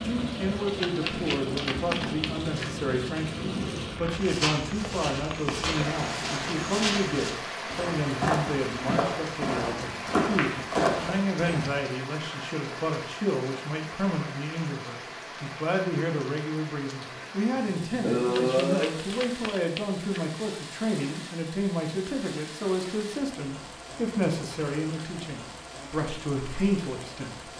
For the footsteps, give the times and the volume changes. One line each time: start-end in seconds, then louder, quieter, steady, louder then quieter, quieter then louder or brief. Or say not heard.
4.2-11.8 louder.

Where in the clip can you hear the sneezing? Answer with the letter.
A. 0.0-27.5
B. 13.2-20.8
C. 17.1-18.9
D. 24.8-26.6
C.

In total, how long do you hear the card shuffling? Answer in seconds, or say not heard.
4 s.